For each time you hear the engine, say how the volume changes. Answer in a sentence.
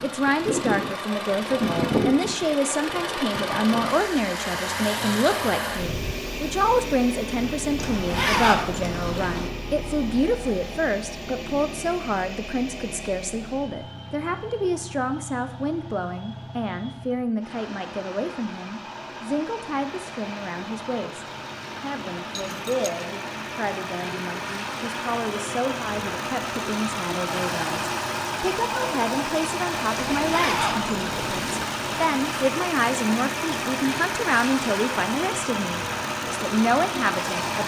The engine can be heard from 0.0 to 37.6 s, getting quieter then louder.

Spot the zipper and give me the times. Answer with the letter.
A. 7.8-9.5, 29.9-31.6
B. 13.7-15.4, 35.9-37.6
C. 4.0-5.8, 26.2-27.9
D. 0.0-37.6
A.